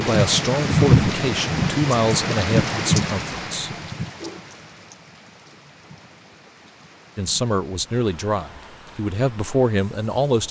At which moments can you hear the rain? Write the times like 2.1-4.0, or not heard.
0.0-10.4.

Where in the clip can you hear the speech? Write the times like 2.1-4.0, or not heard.
0.0-3.7, 7.2-10.4.